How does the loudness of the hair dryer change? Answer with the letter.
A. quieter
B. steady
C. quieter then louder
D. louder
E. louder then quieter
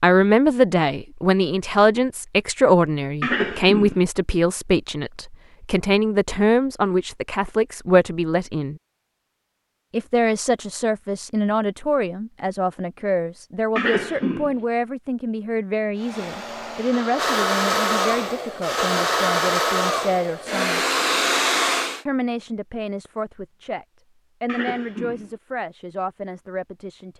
D.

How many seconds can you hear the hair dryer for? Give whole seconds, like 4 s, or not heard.
6 s.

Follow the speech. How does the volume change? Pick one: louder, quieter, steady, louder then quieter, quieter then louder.
quieter.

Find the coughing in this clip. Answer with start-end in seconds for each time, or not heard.
3.2-4.0, 13.8-14.6, 24.4-25.3.